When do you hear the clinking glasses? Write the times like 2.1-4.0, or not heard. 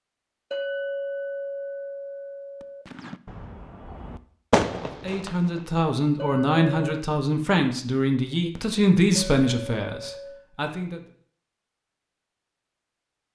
0.5-2.9, 6.2-7.0, 9.2-10.4.